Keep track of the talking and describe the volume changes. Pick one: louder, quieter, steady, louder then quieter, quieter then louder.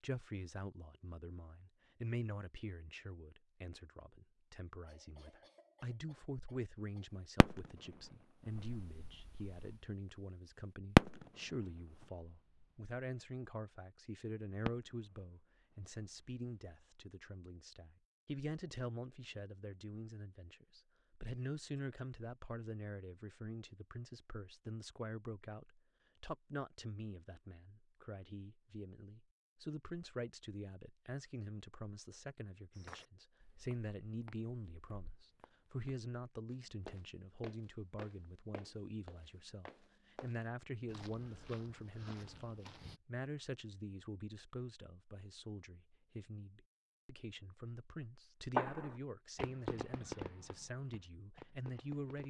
steady.